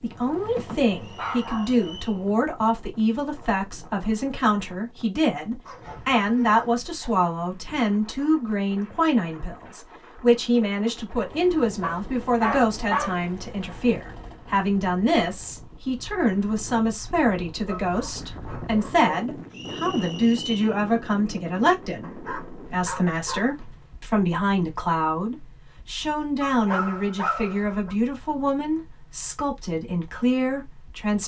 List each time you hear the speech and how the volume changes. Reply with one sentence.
You can hear the speech from 0.0 to 31.2 s, at a steady volume.